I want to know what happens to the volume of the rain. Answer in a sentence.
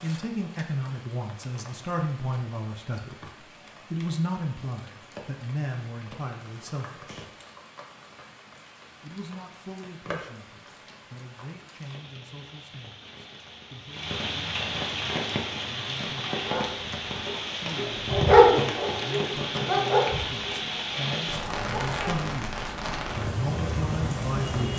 The volume of the rain goes up.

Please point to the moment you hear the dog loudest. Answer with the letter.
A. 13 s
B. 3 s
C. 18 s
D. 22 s
C.